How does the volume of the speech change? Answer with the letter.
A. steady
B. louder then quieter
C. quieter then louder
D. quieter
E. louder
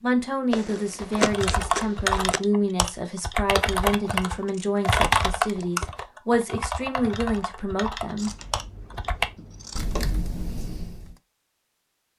A.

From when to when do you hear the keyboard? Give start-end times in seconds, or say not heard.
0.9-11.2.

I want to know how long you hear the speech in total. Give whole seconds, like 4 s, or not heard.
8 s.